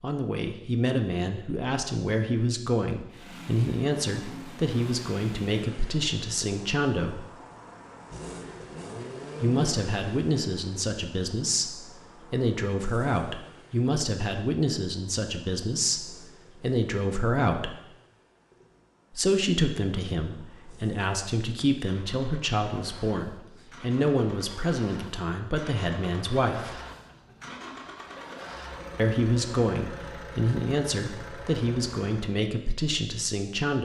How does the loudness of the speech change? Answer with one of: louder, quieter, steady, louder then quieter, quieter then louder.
steady.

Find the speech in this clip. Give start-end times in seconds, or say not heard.
0.0-7.2, 9.4-17.8, 19.1-26.8, 28.9-33.8.